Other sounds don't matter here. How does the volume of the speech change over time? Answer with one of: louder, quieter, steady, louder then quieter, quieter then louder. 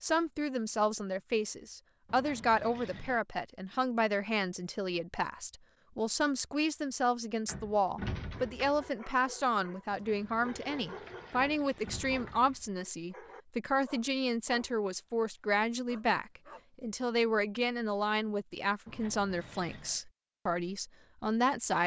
steady.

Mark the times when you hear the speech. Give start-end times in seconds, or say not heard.
0.0-21.8.